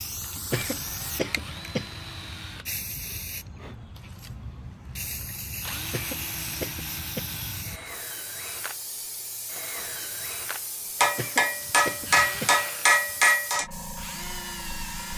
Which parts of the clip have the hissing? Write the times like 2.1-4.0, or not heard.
0.0-15.1.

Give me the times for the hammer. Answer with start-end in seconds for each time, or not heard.
11.0-13.7.